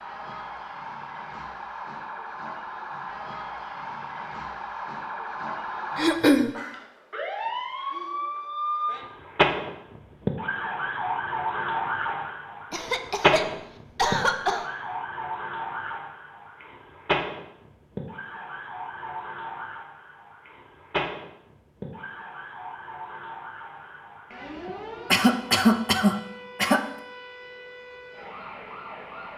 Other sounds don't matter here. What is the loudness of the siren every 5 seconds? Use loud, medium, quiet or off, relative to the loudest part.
medium, loud, loud, medium, medium, quiet.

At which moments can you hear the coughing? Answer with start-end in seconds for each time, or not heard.
6.0-6.5, 12.7-14.7, 25.1-26.9.